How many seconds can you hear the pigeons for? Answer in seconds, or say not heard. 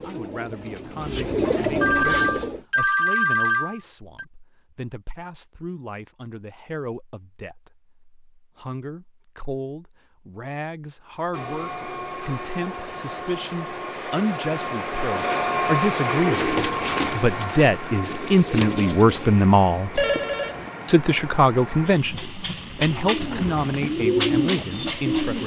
9 s.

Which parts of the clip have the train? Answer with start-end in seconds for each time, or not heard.
11.3-25.4.